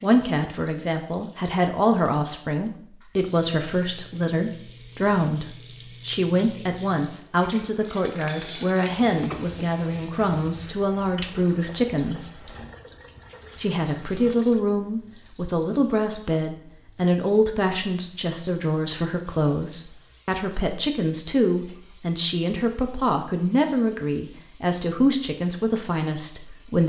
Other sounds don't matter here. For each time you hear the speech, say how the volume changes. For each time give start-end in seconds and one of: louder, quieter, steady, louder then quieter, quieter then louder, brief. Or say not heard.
0.0-12.5 steady
13.6-26.8 steady.